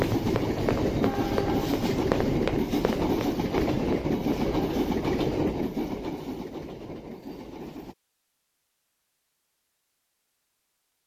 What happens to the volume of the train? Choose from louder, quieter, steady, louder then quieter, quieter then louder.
quieter.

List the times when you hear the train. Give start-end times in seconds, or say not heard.
0.0-8.0.